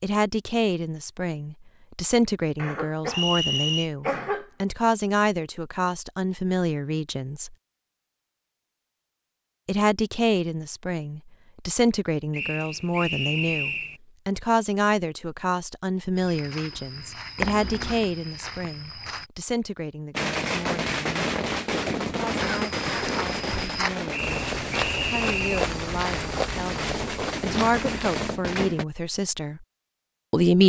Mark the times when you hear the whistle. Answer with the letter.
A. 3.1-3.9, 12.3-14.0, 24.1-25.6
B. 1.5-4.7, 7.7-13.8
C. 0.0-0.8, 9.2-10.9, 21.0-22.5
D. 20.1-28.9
A.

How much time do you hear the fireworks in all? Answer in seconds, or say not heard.
9 s.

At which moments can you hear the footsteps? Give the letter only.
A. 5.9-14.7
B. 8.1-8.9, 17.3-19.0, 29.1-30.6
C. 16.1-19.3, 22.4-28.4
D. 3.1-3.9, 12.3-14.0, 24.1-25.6
C.